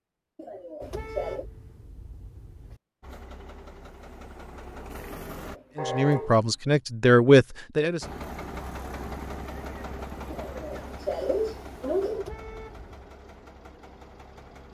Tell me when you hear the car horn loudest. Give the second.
6 s.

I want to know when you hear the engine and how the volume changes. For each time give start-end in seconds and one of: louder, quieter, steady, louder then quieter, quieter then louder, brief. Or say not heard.
3.0-5.6 brief
8.0-14.6 quieter.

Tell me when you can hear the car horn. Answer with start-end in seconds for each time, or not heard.
0.8-2.8, 5.8-6.3, 12.2-13.1.